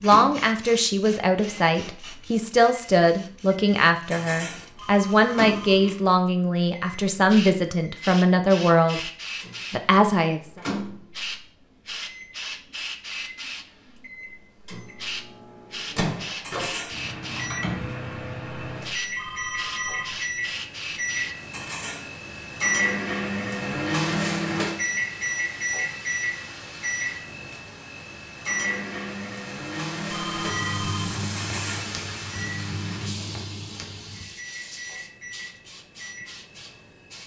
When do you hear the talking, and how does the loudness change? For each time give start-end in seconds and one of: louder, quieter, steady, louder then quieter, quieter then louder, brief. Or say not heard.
0.0-9.0 steady
9.7-10.6 brief.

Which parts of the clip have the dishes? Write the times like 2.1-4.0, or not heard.
4.0-4.7, 16.4-17.0, 21.5-22.1, 31.4-31.9.